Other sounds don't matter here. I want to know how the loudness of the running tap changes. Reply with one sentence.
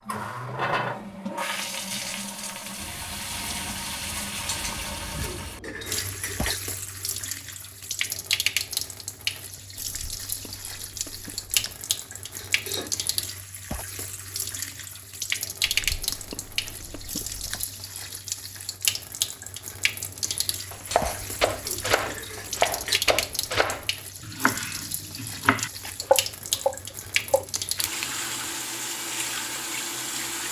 The loudness of the running tap stays about the same.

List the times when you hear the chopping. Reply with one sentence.
The chopping can be heard from 20.7 to 27.4 s.